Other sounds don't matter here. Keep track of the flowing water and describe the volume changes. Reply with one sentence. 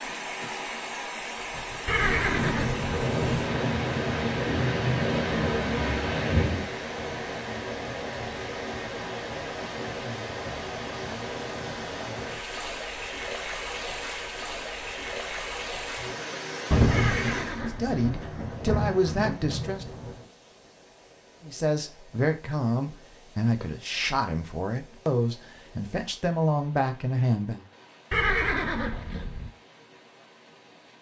The volume of the flowing water goes down.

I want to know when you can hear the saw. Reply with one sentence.
You can't hear the saw here.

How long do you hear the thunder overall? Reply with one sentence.
You can hear the thunder for 8 seconds altogether.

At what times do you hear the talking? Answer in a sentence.
The talking can be heard from 17.8 to 19.9 s and from 21.4 to 27.6 s.